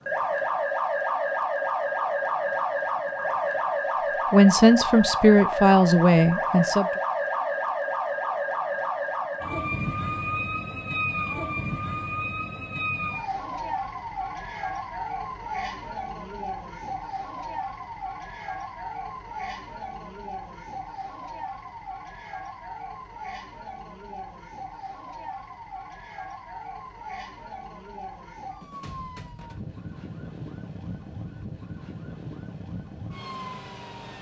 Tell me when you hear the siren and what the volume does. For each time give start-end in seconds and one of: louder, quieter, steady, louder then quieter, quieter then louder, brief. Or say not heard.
0.1-34.1 quieter.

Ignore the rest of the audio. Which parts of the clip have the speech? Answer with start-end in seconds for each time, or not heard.
4.3-6.9.